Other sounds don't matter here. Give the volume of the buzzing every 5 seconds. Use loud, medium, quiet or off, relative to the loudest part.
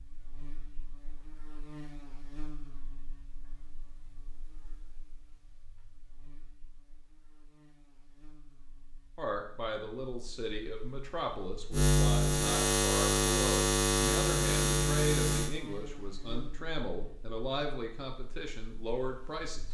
quiet, quiet, loud, medium.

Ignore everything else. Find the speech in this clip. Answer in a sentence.
The speech can be heard from 9.2 to 19.6 s.